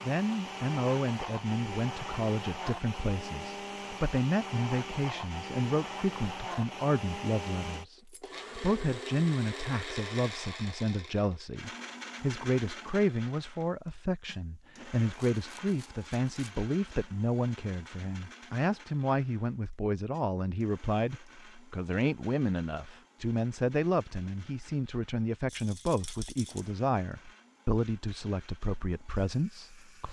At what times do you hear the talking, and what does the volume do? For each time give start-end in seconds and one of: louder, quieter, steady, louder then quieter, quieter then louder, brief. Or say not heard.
0.0-30.0 steady.